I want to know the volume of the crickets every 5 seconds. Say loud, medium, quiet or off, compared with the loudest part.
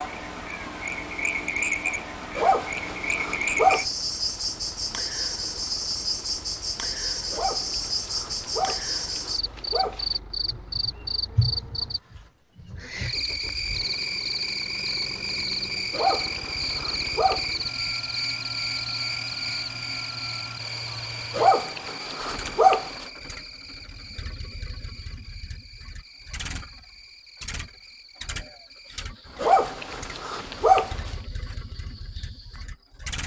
loud, loud, loud, loud, medium, quiet, quiet.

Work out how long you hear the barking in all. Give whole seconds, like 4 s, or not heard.
9 s.